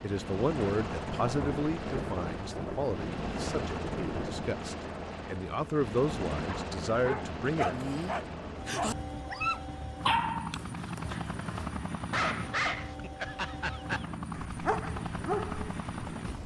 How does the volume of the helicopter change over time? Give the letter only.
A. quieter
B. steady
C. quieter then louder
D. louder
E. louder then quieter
B.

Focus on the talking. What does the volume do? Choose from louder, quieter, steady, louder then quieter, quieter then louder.
quieter then louder.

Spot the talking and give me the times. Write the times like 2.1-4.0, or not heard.
0.0-7.8.